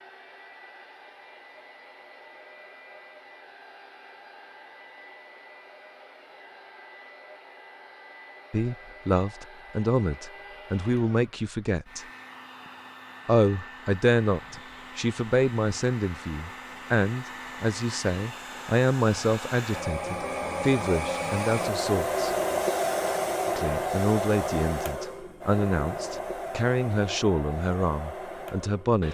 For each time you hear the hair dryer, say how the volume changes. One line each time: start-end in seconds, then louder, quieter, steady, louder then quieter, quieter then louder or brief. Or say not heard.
0.0-29.0 louder.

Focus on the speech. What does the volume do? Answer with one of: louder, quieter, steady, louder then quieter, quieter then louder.
steady.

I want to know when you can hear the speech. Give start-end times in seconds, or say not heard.
8.5-12.1, 13.2-22.3, 23.4-29.0.